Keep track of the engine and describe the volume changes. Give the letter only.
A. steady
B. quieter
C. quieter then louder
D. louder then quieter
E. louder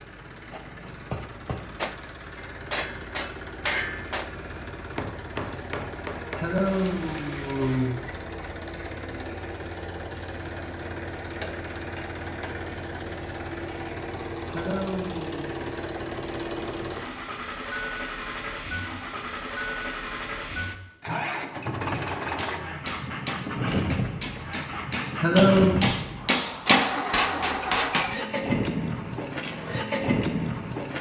E.